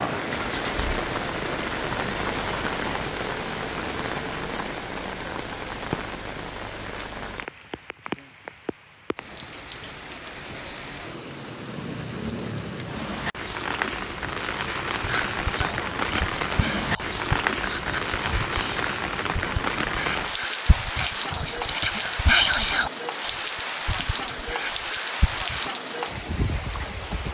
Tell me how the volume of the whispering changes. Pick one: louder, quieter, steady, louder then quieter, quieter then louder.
louder then quieter.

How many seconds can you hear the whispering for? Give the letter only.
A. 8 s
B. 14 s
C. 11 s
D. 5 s
C.